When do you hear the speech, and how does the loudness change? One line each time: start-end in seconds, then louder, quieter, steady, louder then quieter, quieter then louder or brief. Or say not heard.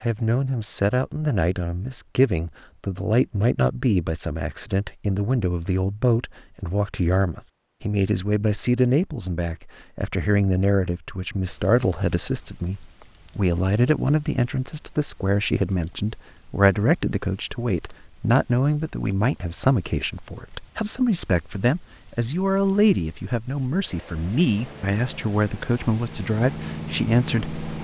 0.0-27.6 steady.